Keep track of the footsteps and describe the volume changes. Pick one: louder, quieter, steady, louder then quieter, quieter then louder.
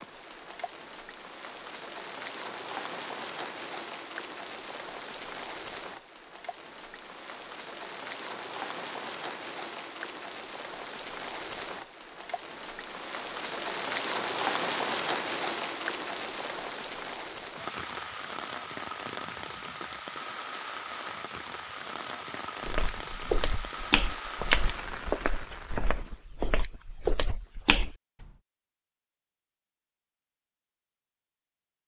quieter then louder.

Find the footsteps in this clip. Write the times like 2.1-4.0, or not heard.
22.6-28.2.